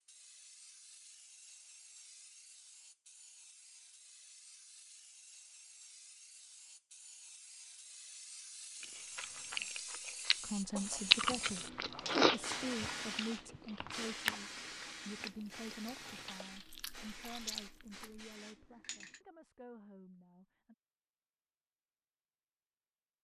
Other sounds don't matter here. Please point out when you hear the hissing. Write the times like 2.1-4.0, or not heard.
0.0-19.2.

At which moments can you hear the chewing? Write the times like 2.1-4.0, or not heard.
8.8-18.4.